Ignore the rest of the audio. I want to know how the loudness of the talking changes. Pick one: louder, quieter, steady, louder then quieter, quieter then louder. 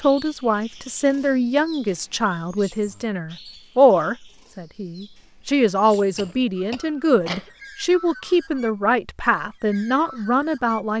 steady.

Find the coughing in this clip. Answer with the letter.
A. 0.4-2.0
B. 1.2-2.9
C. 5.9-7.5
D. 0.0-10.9
C.